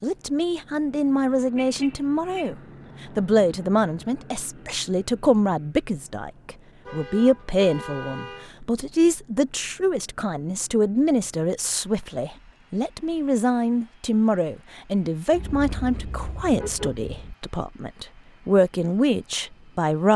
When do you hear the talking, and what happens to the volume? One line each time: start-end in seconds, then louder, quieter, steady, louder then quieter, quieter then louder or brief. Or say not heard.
0.0-20.1 steady.